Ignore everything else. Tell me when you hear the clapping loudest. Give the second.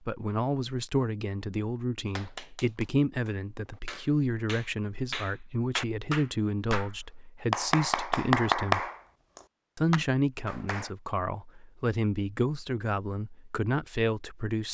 9 s.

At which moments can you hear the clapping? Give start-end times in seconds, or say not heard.
2.0-10.9.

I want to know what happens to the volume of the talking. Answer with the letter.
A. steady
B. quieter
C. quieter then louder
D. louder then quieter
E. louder
A.